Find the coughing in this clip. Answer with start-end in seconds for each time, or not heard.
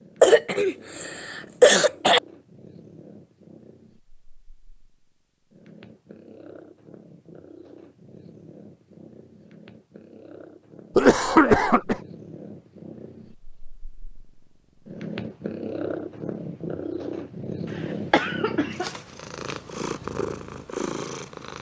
0.2-2.2, 10.9-12.0, 18.1-18.9.